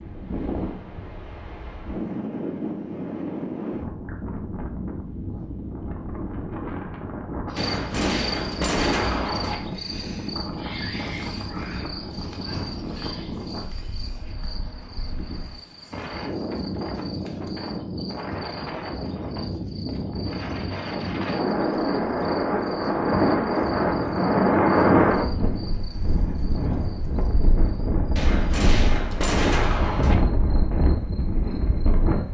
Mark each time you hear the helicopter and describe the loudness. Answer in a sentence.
The helicopter can't be heard in this clip.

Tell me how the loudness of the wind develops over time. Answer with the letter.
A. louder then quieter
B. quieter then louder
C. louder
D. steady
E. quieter
A.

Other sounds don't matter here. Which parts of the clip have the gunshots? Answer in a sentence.
The gunshots can be heard from 7.5 to 9.6 s and from 28.1 to 30.1 s.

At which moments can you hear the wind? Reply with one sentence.
The wind can be heard from 0.0 to 32.2 s.